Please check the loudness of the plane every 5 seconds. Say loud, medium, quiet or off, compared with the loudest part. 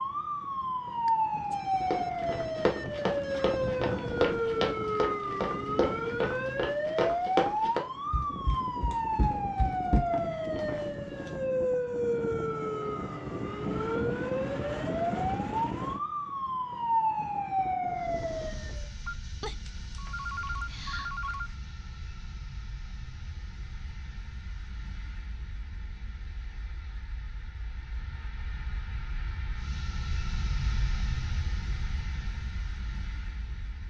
off, off, off, medium, medium, medium, loud.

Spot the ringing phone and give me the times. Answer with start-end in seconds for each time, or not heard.
1.1-3.8, 19.1-21.6.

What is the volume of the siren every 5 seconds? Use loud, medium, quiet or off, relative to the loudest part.
loud, loud, loud, loud, off, off, off.